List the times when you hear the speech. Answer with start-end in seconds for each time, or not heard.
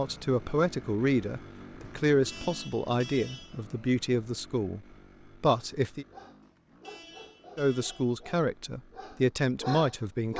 0.0-6.0, 7.5-10.3.